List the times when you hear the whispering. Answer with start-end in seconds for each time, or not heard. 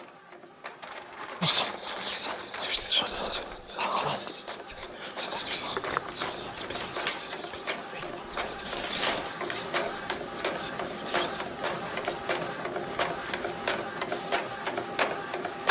1.4-12.3.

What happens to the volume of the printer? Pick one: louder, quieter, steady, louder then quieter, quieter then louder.
louder.